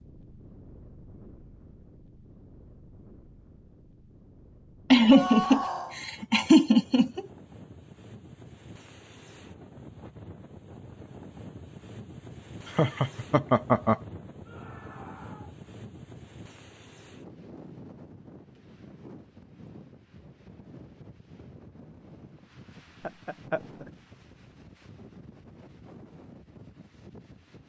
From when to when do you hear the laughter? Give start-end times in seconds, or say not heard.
4.9-7.2, 12.8-13.9, 23.0-23.9.